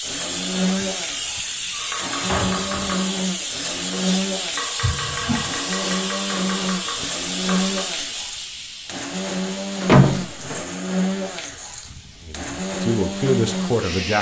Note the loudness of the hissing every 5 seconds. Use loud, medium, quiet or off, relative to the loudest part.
loud, loud, quiet.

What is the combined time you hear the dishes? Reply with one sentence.
You can't hear the dishes here.